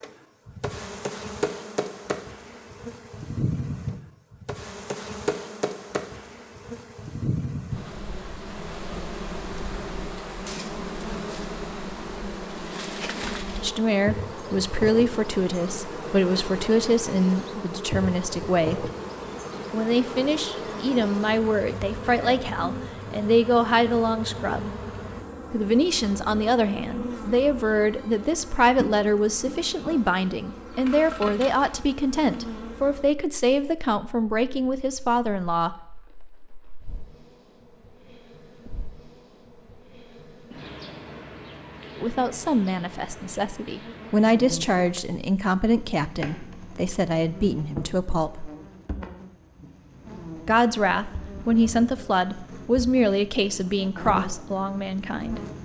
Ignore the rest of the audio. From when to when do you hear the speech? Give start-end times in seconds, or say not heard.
13.6-18.9, 19.7-24.8, 25.5-35.8, 42.0-48.5, 50.5-55.4.